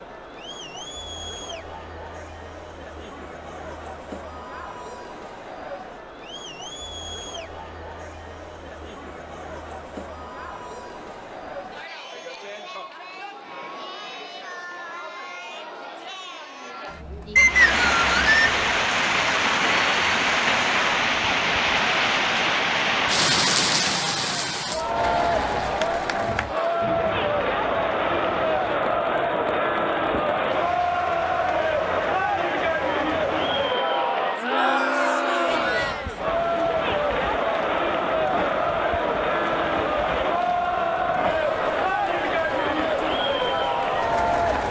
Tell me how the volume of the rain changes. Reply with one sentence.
The loudness of the rain goes down.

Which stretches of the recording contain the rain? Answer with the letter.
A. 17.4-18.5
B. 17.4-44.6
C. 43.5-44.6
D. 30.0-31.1
B.